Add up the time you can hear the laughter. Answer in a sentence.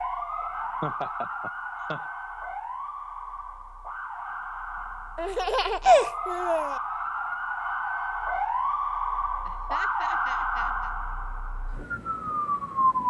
The laughter can be heard for 4 seconds in total.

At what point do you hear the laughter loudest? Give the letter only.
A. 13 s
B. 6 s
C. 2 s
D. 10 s
B.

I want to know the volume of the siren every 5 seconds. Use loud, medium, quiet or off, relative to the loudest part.
medium, loud, loud.